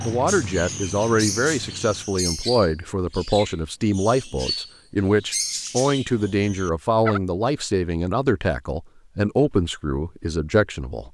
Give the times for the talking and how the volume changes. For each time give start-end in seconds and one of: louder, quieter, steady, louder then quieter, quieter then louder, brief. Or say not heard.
0.0-11.1 steady.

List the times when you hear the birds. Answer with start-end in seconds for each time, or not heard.
0.0-7.2.